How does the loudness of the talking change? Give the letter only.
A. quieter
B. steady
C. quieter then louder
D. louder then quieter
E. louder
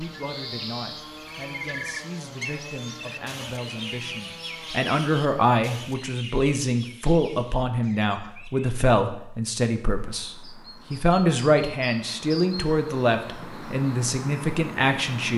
E.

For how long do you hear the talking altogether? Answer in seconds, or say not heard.
15 s.